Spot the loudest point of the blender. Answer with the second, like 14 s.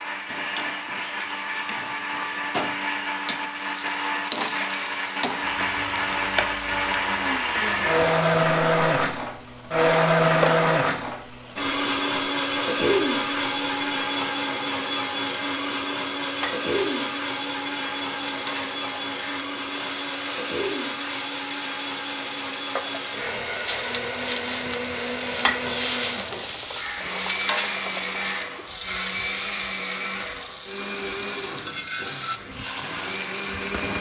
10 s.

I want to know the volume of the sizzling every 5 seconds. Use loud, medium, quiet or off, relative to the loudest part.
medium, medium, medium, medium, loud, loud, medium.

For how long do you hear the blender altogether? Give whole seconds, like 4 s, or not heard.
34 s.